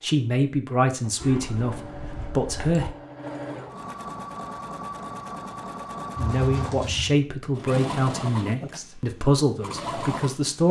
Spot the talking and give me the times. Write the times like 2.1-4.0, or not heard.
0.0-2.9, 6.2-10.6.